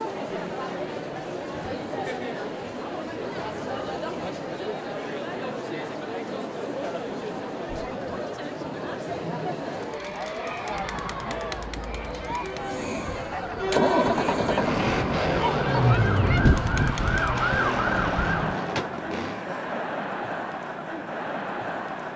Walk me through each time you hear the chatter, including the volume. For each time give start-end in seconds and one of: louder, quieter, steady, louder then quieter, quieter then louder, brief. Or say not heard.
0.0-22.1 steady.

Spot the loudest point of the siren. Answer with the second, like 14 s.
16 s.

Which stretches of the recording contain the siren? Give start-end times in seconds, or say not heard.
9.9-18.6.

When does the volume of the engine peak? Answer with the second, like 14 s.
14 s.